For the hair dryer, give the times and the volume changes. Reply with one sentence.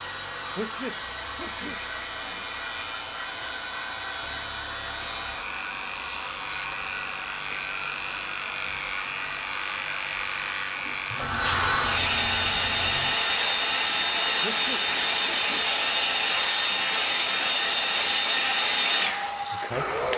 The hair dryer can be heard from 0.0 to 20.1 s, getting louder.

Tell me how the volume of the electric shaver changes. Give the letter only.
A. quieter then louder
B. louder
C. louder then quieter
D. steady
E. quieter
C.